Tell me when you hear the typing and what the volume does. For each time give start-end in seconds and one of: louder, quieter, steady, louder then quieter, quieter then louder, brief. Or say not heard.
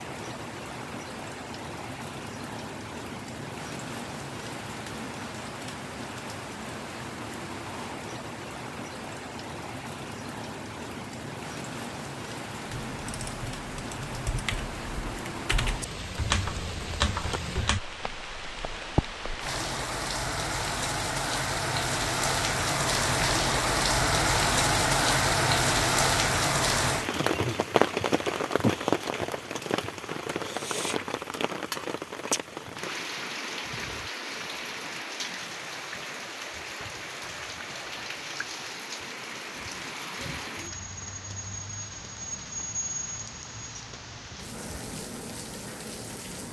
12.8-17.8 louder.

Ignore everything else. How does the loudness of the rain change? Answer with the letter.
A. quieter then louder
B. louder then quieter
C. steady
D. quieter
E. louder
B.